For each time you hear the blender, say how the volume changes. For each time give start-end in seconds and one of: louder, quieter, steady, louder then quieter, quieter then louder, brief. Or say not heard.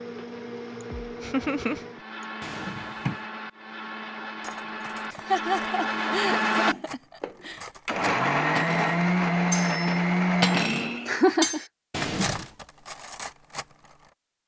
0.0-11.2 louder.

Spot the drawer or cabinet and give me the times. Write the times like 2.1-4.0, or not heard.
2.4-3.2, 11.9-12.6.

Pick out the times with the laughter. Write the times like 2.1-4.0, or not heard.
1.2-1.8, 5.1-7.6, 11.1-11.7.